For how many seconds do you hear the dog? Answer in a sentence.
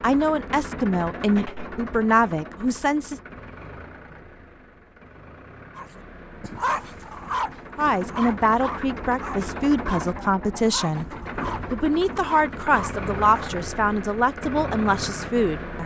The dog can be heard for 8 seconds in total.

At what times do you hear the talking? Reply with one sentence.
You can hear the talking from 0.0 to 3.2 s, from 7.8 to 11.1 s and from 11.7 to 15.8 s.